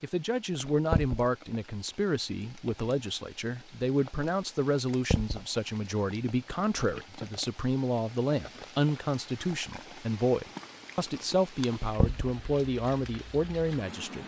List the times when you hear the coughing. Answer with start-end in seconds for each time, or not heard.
not heard.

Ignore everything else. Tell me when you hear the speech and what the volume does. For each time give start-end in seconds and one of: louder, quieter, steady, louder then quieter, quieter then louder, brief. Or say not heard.
0.0-14.2 steady.